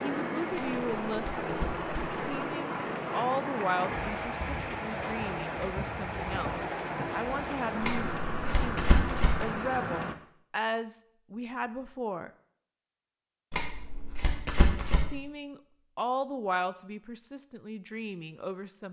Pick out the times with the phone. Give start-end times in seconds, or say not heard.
not heard.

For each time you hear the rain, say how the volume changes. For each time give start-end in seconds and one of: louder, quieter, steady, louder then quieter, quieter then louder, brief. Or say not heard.
0.0-10.2 steady.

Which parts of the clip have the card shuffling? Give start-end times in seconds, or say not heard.
0.5-2.2, 7.8-9.4, 13.5-15.1.